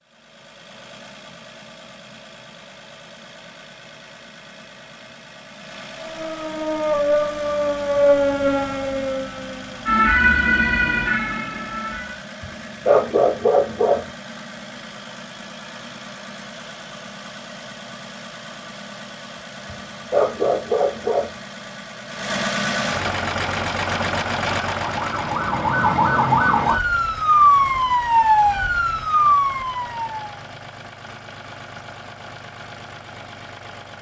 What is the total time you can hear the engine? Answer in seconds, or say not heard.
34 s.